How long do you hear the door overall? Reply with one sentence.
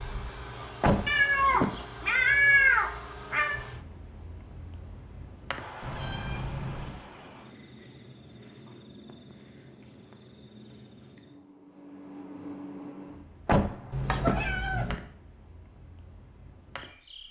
The door can be heard for 2 seconds in total.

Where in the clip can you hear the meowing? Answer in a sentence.
You can hear the meowing from 1.1 to 3.6 s, from 5.8 to 7.0 s and from 13.9 to 14.9 s.